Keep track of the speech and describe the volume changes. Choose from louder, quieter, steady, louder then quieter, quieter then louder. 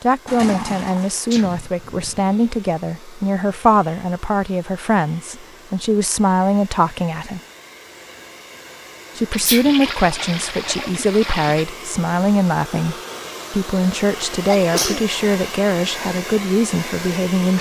steady.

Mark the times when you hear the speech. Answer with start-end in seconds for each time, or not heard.
0.0-7.4, 9.2-17.5.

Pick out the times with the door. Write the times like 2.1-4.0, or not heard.
not heard.